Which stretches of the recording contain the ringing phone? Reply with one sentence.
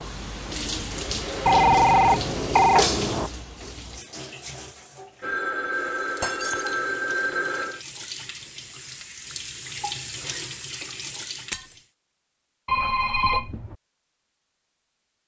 The ringing phone can be heard from 1.4 to 3.3 s, from 5.2 to 7.8 s and from 12.7 to 13.8 s.